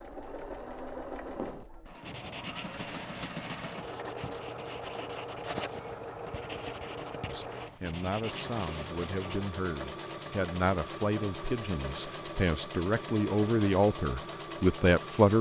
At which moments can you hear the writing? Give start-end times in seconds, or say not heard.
1.2-9.5.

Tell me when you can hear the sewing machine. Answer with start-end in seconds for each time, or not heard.
0.0-15.3.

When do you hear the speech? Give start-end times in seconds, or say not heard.
7.0-15.3.